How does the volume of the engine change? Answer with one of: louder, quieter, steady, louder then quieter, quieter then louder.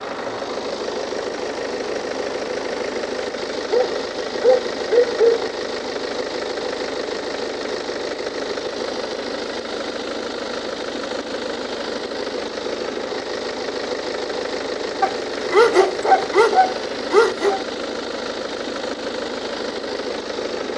steady.